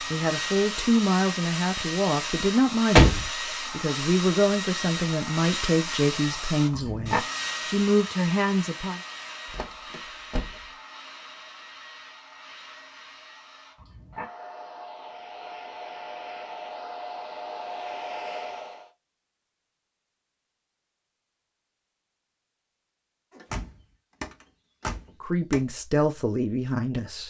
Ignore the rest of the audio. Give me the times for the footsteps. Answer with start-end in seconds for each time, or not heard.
not heard.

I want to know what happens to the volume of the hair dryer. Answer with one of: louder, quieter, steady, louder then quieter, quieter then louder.
quieter then louder.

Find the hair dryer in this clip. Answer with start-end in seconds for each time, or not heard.
0.0-18.9.